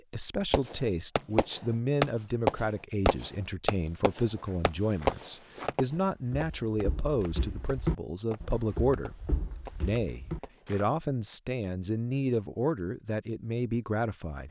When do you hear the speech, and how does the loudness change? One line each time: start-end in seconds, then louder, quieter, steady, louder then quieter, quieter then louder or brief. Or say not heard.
0.1-14.4 steady.